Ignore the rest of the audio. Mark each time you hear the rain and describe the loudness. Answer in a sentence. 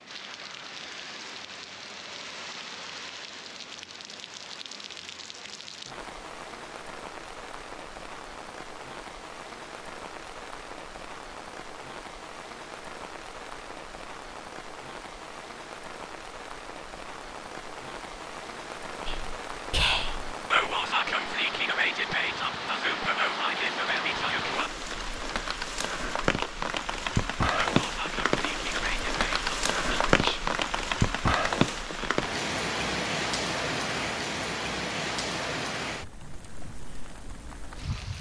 You can hear the rain from 0.0 to 38.1 s, getting louder.